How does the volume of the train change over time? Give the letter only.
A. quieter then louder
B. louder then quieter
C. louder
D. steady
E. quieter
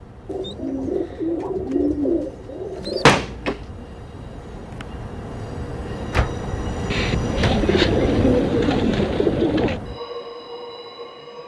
B.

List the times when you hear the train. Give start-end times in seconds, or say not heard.
0.0-11.4.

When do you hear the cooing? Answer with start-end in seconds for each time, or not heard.
0.2-3.2, 6.9-9.8.